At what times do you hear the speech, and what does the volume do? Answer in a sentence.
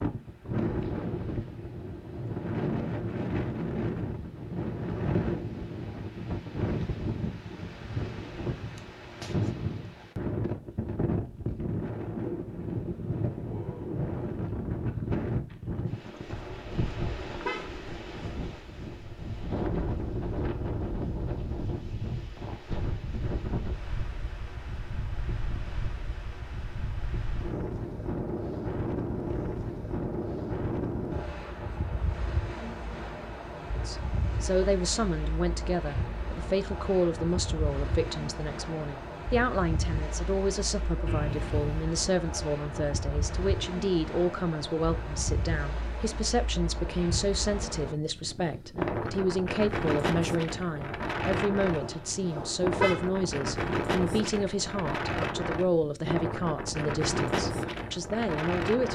The speech can be heard from 33.9 to 58.9 s, at a steady volume.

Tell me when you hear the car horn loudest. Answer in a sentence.
The volume of the car horn peaks at 53 seconds.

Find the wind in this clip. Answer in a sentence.
The wind can be heard from 0.0 to 58.9 s.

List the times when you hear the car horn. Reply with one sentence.
You can hear the car horn from 16.2 to 17.7 s and from 51.6 to 53.0 s.